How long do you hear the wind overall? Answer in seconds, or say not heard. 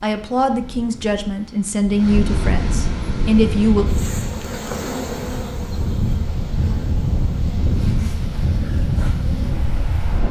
10 s.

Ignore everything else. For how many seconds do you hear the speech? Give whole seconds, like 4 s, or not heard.
4 s.